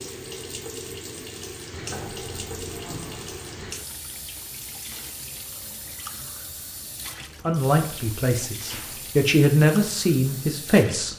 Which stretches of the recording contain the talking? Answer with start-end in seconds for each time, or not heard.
7.5-11.1.